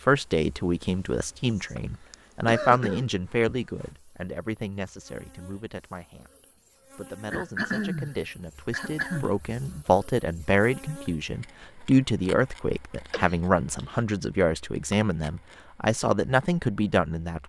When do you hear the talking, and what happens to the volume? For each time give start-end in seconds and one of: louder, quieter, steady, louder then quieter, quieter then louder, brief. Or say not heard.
0.0-17.4 quieter then louder.